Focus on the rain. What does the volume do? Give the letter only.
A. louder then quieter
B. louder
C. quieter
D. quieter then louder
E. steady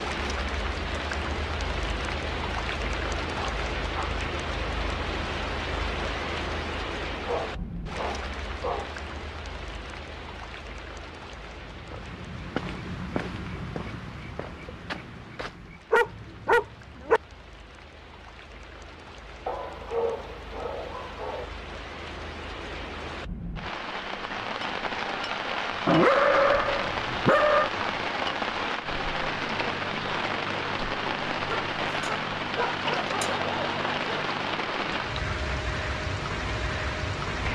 D.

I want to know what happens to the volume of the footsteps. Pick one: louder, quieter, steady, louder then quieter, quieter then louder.
quieter.